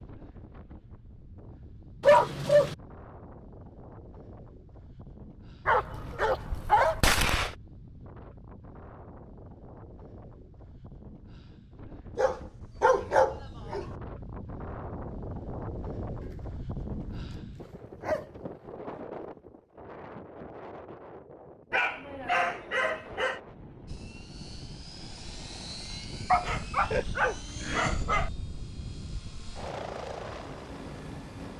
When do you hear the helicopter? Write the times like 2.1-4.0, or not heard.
23.9-31.5.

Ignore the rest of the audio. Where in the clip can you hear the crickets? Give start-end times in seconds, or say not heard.
not heard.